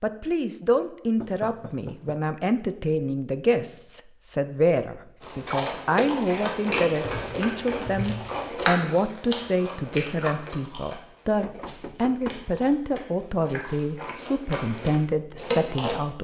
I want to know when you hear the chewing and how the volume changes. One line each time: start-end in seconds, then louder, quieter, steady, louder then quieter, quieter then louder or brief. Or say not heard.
5.2-15.9 quieter then louder.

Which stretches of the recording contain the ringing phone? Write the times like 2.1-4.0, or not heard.
not heard.